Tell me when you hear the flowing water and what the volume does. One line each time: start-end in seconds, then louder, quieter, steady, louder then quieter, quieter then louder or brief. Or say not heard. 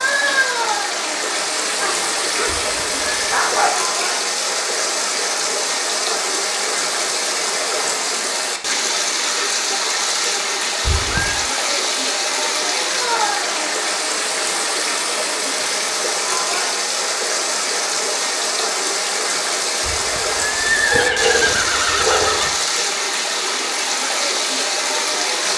0.0-25.5 steady.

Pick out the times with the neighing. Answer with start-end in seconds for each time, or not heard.
2.6-3.1, 10.8-11.4, 19.9-22.6.